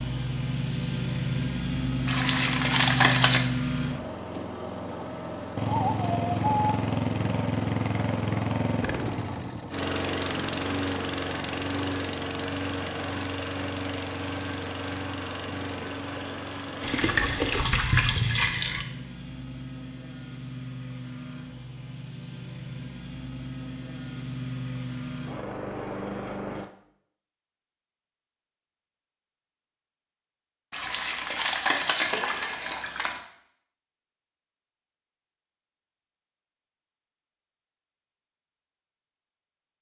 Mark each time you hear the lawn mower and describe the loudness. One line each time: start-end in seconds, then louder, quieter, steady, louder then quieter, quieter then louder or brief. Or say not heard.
0.0-26.7 quieter.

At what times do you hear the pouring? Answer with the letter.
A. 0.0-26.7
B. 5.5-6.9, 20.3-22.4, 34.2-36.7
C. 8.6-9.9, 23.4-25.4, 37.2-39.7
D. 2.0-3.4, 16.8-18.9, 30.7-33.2
D.